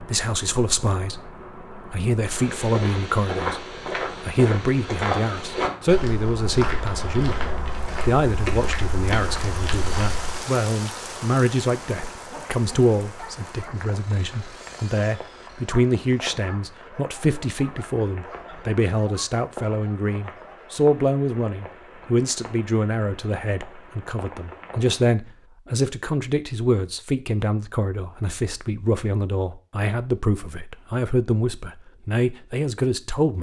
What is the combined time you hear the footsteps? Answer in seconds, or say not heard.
8 s.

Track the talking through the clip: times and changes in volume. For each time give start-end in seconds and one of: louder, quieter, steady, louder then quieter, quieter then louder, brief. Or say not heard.
0.0-33.3 steady.